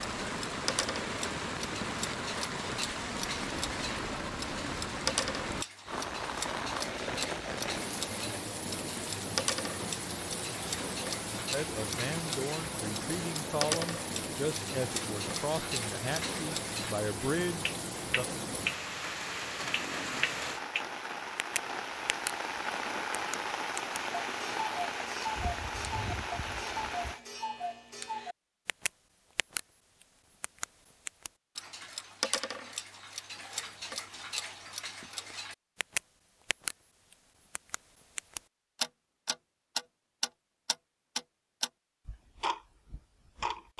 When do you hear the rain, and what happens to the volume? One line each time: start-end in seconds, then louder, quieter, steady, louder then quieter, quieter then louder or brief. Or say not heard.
0.0-27.2 steady.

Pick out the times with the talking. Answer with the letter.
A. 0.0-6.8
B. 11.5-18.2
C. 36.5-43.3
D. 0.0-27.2
B.